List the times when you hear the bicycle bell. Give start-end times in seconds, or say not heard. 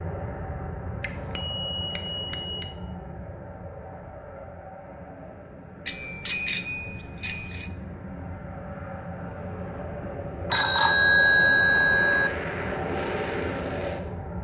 1.0-2.8, 5.8-7.7, 10.5-12.3.